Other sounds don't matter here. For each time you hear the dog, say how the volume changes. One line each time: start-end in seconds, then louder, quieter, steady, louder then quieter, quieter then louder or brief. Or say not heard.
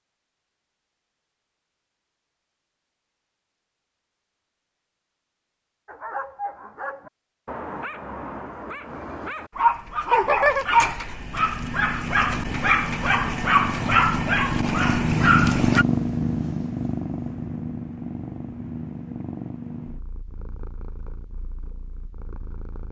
5.8-15.8 louder.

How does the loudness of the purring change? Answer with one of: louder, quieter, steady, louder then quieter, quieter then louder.
louder then quieter.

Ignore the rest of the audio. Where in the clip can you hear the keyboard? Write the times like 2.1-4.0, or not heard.
not heard.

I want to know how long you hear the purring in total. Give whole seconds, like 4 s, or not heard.
12 s.